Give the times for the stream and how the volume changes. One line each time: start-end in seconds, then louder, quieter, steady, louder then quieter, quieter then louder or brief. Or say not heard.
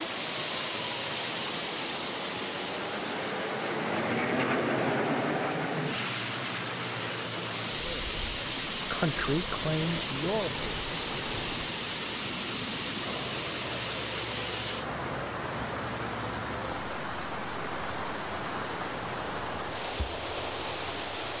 0.0-21.3 steady.